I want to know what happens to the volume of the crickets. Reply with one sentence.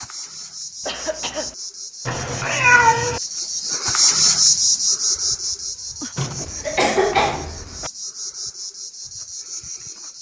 The volume of the crickets goes up, then down.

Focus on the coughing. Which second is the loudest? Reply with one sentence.
The volume of the coughing peaks at 7 seconds.